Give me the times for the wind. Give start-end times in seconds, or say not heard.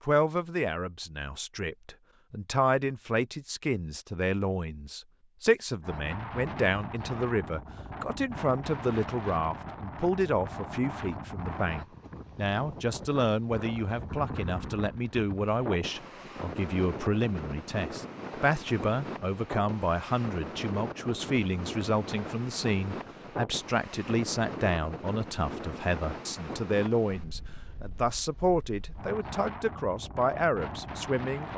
5.8-31.5.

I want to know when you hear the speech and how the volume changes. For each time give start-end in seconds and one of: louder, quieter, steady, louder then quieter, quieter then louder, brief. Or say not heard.
0.0-31.5 steady.